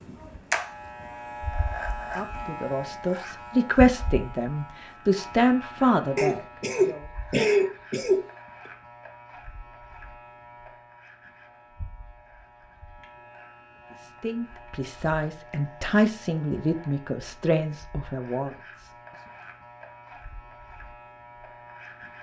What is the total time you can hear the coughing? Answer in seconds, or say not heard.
2 s.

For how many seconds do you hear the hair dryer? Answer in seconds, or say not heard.
not heard.